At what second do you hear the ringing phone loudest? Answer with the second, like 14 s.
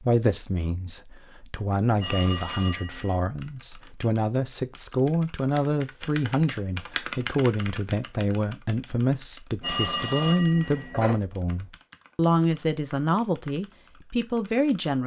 10 s.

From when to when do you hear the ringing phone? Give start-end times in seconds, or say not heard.
1.9-3.2, 9.6-11.2.